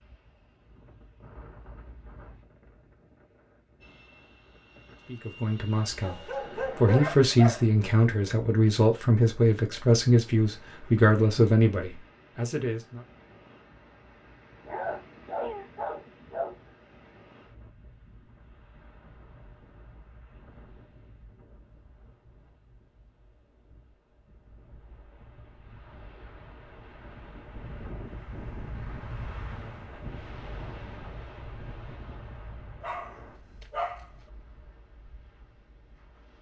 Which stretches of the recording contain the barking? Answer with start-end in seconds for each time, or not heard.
6.0-7.7, 14.7-16.7, 32.8-34.0.